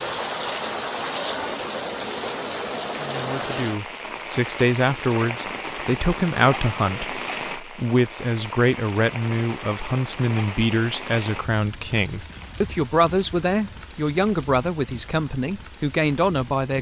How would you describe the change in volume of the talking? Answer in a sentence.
The volume of the talking stays about the same.